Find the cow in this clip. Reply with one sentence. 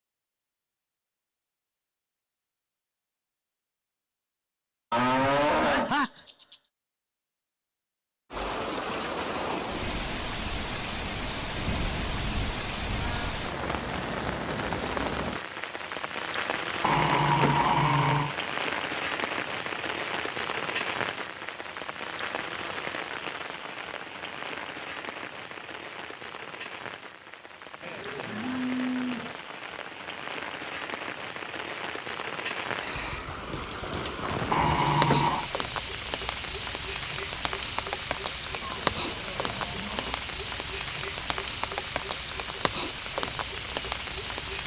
You can hear the cow from 4.9 to 6.5 s, from 11.6 to 13.4 s, from 27.8 to 29.4 s and from 38.6 to 40.2 s.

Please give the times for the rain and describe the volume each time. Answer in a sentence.
The rain can be heard from 8.3 to 44.6 s, getting quieter then louder.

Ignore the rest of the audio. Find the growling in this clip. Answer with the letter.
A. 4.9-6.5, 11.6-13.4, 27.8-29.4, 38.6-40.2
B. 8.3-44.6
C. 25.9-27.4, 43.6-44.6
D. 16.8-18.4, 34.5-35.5
D.